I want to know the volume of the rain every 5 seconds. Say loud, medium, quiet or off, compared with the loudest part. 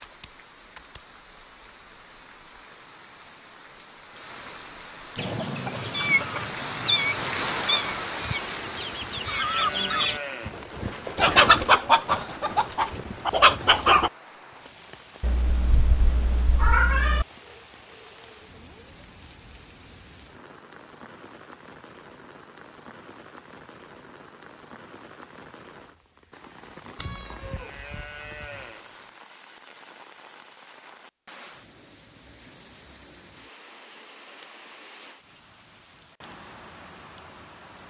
quiet, loud, quiet, quiet, quiet, quiet, quiet, quiet.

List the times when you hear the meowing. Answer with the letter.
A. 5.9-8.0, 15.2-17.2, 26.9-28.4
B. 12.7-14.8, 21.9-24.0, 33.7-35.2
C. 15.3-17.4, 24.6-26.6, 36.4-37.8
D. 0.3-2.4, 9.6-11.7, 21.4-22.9
A.